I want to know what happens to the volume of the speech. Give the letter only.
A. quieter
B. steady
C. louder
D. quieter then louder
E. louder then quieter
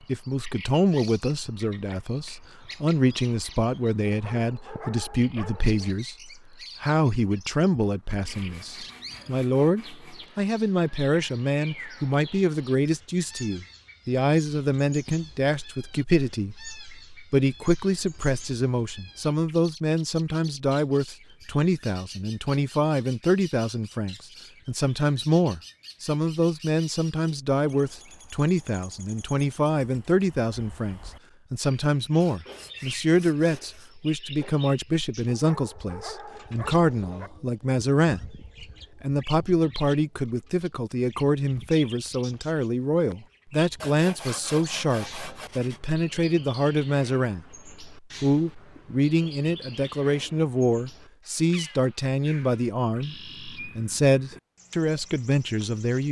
B.